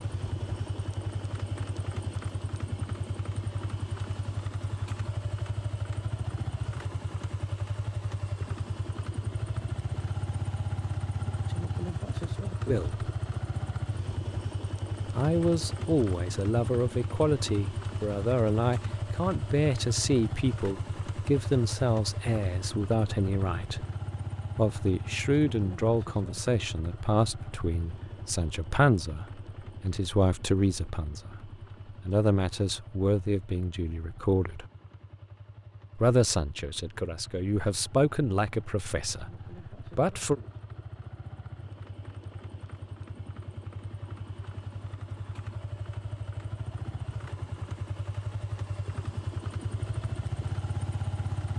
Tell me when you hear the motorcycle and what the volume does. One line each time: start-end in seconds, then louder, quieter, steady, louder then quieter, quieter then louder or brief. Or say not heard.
0.0-51.5 quieter then louder.